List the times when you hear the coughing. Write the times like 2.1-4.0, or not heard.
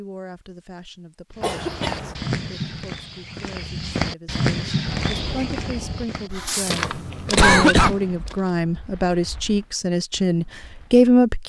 1.4-2.2, 6.3-8.0.